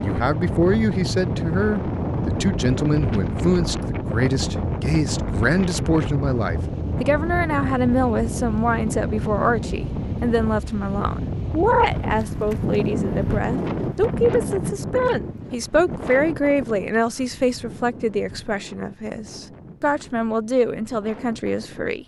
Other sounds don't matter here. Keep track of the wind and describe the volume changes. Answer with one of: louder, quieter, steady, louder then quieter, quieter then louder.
quieter.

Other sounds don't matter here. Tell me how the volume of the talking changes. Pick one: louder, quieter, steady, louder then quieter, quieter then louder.
steady.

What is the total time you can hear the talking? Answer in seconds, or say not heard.
22 s.